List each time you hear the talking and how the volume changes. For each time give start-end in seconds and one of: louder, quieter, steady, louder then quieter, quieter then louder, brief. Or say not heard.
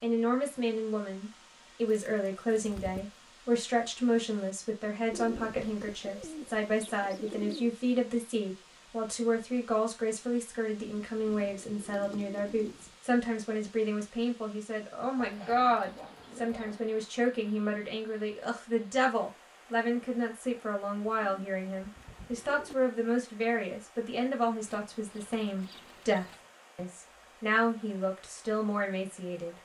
0.0-29.5 steady.